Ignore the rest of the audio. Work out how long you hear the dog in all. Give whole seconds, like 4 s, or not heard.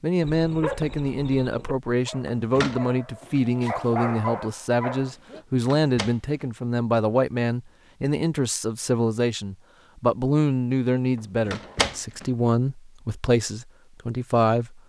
5 s.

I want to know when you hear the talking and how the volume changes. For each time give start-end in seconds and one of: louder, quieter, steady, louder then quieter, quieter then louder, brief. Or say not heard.
0.0-14.8 steady.